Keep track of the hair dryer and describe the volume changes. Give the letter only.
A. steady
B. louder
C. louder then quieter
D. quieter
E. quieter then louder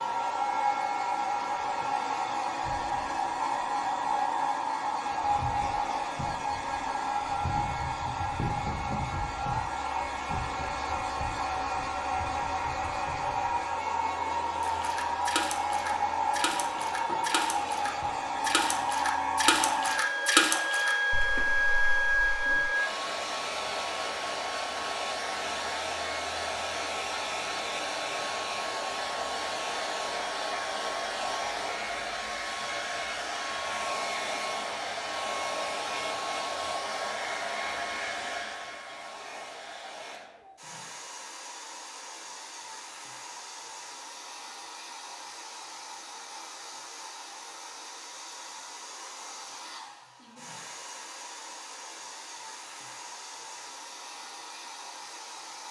D.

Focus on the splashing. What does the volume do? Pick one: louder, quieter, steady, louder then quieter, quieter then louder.
louder then quieter.